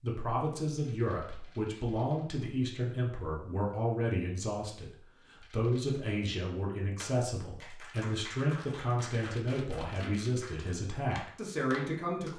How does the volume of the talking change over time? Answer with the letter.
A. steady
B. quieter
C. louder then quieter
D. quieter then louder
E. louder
A.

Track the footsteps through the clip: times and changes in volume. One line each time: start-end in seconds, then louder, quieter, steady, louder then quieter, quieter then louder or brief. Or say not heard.
not heard.